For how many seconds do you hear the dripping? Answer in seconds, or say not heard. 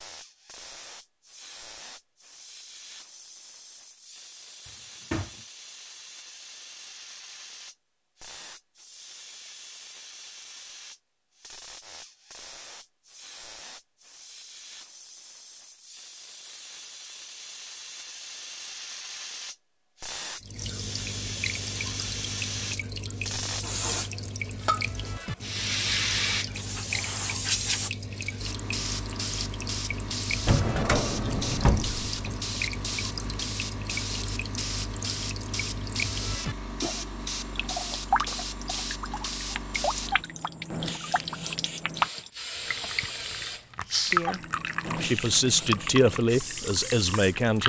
27 s.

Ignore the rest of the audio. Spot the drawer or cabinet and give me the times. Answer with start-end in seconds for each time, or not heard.
4.7-5.4, 30.4-32.4.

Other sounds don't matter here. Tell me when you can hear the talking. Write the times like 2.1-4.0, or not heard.
44.1-47.6.